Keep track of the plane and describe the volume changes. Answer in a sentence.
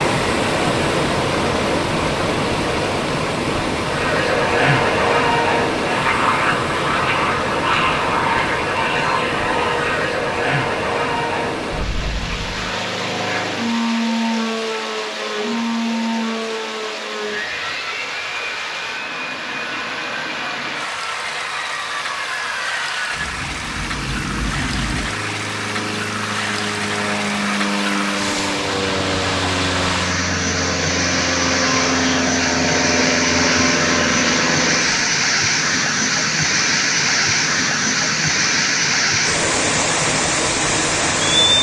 The volume of the plane goes down, then up.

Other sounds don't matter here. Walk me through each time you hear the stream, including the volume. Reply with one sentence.
You can hear the stream from 0.0 to 41.5 s, getting quieter then louder.